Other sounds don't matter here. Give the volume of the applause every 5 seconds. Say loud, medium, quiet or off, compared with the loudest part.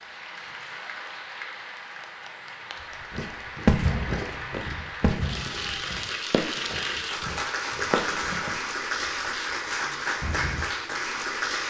medium, loud, loud.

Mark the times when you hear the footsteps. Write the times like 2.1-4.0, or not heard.
3.1-8.6.